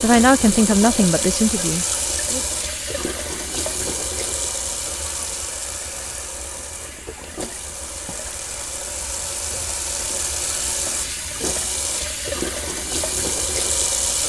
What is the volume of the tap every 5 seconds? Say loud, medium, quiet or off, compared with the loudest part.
loud, medium, loud.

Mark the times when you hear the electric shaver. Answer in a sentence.
The electric shaver can't be heard in this clip.